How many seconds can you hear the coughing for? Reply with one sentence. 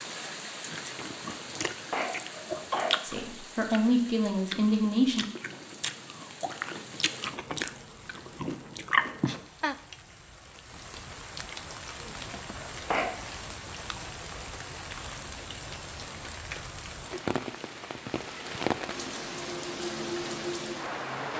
The coughing can be heard for 2 seconds in total.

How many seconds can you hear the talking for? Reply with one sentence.
You can hear the talking for 2 seconds altogether.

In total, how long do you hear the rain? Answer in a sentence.
The rain can be heard for 21 seconds in total.